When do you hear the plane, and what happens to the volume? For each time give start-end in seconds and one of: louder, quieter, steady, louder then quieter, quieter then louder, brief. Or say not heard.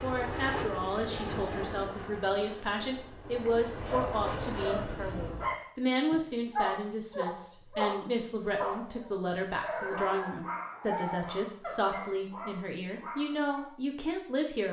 0.0-5.5 quieter then louder.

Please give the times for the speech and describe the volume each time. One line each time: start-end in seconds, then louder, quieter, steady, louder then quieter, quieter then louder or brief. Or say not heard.
0.0-14.6 steady.